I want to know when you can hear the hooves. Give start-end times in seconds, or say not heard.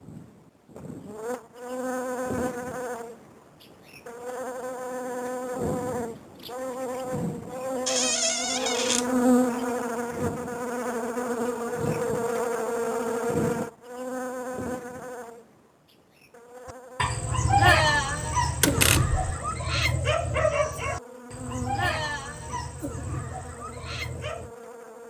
not heard.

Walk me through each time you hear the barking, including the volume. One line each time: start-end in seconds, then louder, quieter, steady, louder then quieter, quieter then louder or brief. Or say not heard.
16.9-24.5 quieter.